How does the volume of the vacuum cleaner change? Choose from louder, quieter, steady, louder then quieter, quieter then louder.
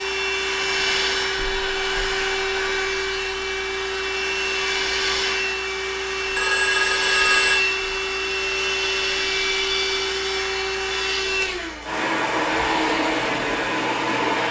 steady.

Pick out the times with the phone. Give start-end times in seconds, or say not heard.
6.3-7.6.